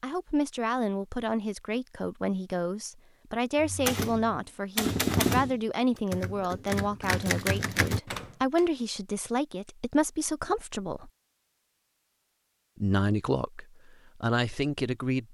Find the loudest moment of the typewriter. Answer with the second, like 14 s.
5 s.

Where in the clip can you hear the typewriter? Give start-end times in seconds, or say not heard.
3.6-8.6.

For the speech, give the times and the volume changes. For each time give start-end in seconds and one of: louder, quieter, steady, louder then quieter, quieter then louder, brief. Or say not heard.
0.0-11.1 steady
12.8-15.2 brief.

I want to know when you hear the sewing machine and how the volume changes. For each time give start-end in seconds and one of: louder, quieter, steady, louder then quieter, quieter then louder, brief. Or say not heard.
not heard.